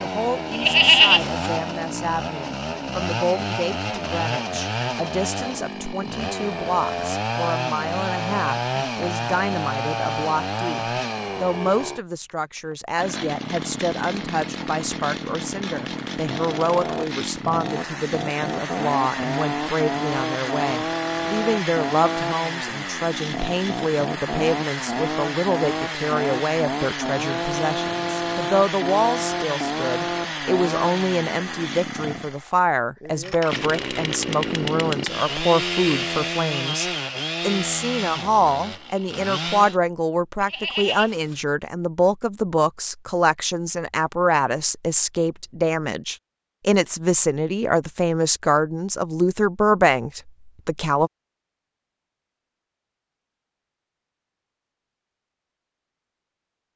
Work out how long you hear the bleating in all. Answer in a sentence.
You can hear the bleating for 2 seconds altogether.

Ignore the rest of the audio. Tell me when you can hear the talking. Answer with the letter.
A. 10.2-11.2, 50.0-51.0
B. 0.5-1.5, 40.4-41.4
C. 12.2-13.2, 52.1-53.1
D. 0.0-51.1
D.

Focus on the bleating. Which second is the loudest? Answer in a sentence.
The loudest moment of the bleating is at 1 second.